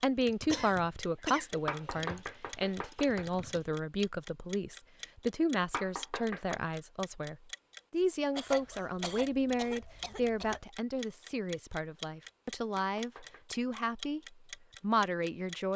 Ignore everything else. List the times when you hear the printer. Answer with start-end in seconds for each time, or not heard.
not heard.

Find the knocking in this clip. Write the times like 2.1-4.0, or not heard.
1.6-3.3, 5.7-6.6, 12.8-13.6.